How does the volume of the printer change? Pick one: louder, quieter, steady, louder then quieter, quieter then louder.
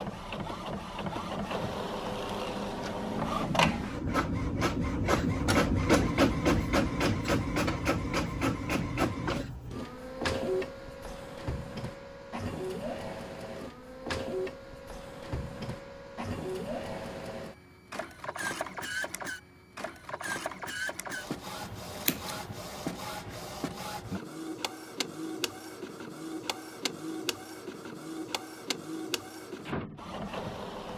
quieter.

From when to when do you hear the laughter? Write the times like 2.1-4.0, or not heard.
not heard.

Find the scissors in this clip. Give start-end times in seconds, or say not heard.
21.6-22.6.